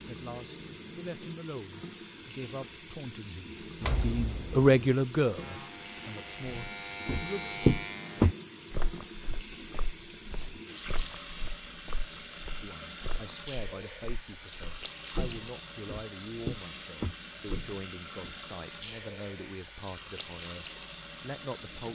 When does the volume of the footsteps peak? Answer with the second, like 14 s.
8 s.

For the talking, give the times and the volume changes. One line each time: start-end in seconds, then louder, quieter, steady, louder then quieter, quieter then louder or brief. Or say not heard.
0.0-7.5 louder then quieter
12.6-21.8 steady.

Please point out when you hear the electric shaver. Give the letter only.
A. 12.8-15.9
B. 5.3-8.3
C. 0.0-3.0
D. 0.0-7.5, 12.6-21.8
B.